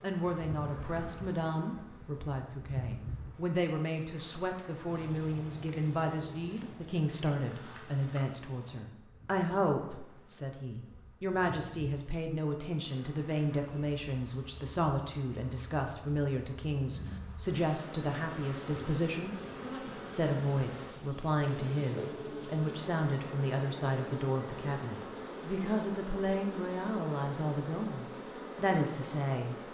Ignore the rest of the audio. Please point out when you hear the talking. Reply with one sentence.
You can hear the talking from 0.0 to 19.5 s and from 20.1 to 29.6 s.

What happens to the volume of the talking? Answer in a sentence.
The loudness of the talking stays about the same.